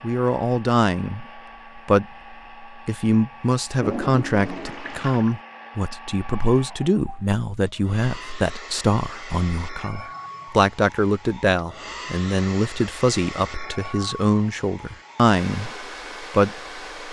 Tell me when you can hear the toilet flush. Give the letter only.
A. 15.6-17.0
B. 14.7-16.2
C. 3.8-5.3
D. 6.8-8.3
C.